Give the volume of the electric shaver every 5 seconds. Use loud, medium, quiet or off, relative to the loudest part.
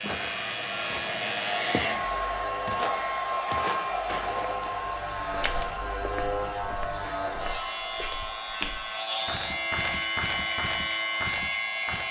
medium, loud, loud.